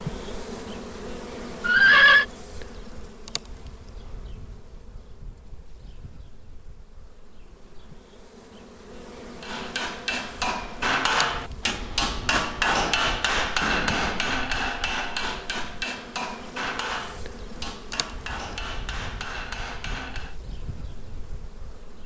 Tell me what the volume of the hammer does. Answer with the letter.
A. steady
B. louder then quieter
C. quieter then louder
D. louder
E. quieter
E.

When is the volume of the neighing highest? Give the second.
2 s.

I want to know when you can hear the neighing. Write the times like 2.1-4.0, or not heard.
1.6-2.2, 13.6-14.4.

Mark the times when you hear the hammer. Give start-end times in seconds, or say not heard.
9.4-20.4.